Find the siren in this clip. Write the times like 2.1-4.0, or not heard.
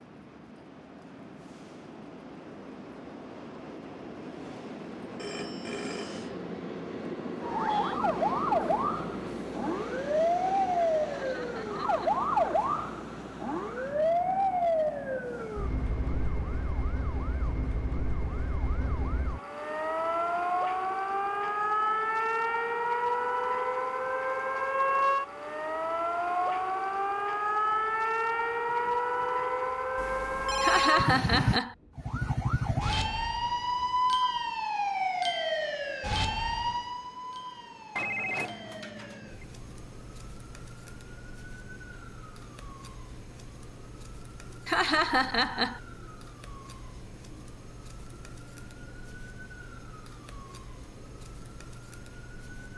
7.4-52.7.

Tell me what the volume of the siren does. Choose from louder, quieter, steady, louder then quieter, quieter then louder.
quieter.